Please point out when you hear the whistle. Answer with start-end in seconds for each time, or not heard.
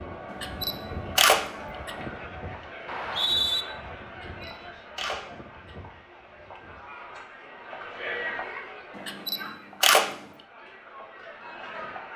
2.9-3.6.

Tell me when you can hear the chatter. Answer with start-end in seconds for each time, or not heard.
0.0-12.1.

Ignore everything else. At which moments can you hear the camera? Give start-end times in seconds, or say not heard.
0.3-1.9, 4.1-5.8, 8.9-10.2.